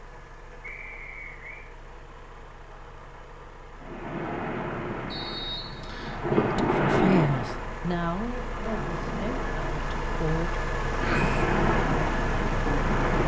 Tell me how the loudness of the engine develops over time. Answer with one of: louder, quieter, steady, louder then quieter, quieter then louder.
louder.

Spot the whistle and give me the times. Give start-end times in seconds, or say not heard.
0.6-1.6, 5.1-6.2, 11.1-11.6.